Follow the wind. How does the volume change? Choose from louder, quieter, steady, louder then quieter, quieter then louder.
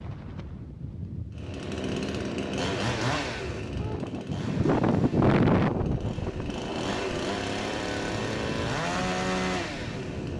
louder then quieter.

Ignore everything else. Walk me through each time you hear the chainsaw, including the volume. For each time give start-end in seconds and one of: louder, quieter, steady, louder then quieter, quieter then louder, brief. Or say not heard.
1.4-10.3 quieter then louder.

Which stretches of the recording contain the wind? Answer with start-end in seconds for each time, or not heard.
0.0-10.3.